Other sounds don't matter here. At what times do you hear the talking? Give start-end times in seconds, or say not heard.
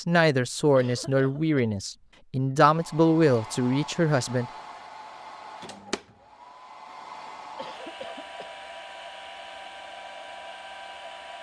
0.0-4.5.